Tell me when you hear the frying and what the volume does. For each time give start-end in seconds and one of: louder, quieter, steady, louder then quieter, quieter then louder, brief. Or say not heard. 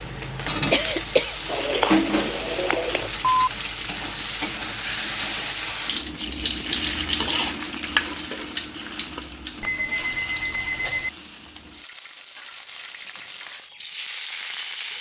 0.0-14.9 quieter.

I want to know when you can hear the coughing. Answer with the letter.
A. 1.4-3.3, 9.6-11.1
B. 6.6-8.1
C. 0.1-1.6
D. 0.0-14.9
C.